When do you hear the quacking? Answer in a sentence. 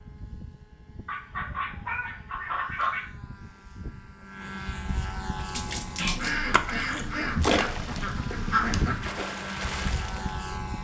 The quacking can be heard from 1.1 to 3.0 s and from 6.0 to 8.9 s.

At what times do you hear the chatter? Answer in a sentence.
You can't hear the chatter here.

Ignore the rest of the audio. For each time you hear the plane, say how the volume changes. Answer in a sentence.
You can hear the plane from 0.0 to 10.7 s, getting louder.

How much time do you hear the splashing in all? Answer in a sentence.
You can hear the splashing for 5 seconds altogether.